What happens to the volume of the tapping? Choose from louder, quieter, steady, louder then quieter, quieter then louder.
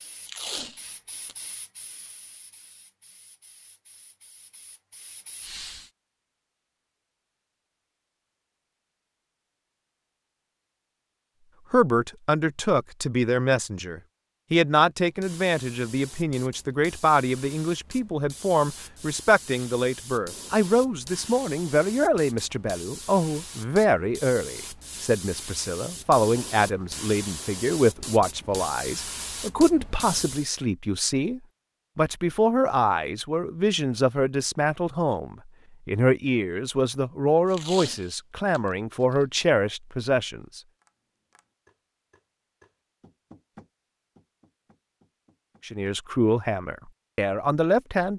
louder then quieter.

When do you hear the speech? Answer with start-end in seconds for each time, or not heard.
11.7-40.6, 45.6-48.1.